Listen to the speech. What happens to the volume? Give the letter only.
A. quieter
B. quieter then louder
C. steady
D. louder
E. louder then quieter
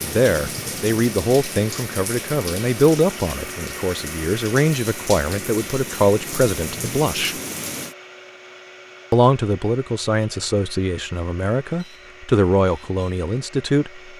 C.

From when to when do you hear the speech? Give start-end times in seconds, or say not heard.
0.0-7.3, 9.1-14.0.